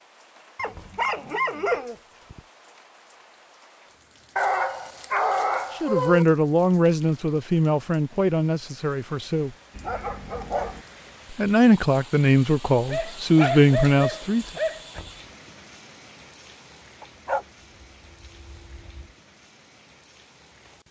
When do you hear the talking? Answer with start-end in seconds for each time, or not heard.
5.8-9.5, 11.3-14.4.